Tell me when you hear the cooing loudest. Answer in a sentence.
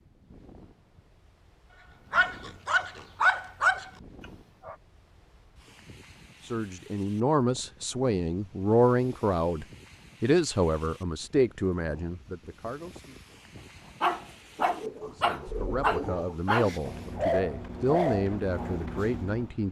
The loudest moment of the cooing is at 16 seconds.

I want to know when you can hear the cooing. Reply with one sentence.
You can hear the cooing from 14.6 to 16.4 s.